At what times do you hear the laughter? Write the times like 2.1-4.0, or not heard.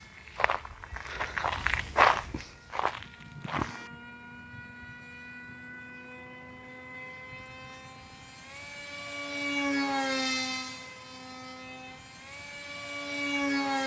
not heard.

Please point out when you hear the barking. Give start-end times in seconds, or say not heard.
not heard.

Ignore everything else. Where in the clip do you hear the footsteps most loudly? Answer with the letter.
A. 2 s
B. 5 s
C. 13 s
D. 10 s
A.